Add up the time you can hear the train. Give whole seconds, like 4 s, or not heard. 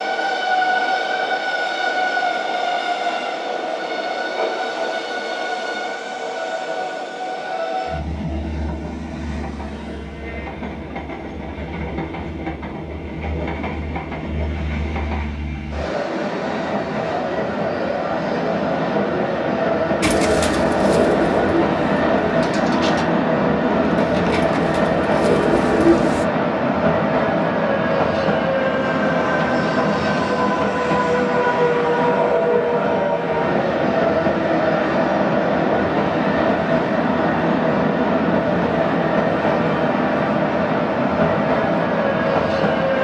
43 s.